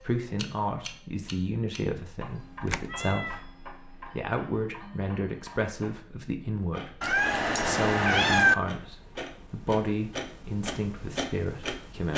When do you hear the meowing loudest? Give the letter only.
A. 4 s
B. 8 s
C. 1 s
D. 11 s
B.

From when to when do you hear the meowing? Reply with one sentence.
You can hear the meowing from 2.7 to 3.4 s and from 7.0 to 8.6 s.